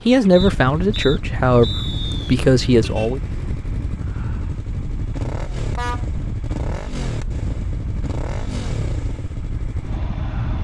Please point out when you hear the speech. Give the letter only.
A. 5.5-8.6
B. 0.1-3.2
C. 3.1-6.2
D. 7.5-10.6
B.